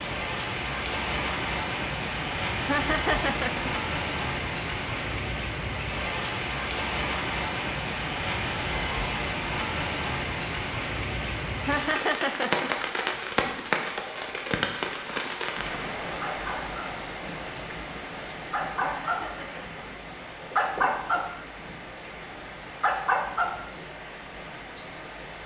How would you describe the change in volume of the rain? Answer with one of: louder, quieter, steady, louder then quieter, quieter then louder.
quieter.